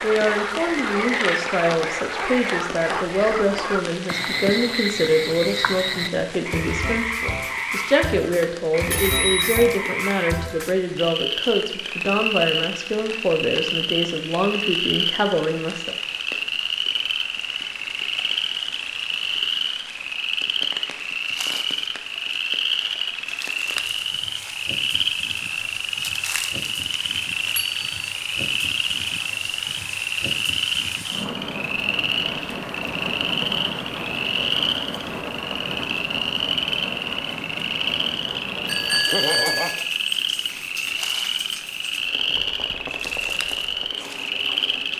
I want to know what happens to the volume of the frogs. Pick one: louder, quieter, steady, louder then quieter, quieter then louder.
steady.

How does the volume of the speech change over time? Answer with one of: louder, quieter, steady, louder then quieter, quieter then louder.
steady.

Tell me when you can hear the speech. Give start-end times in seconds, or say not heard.
0.0-15.9.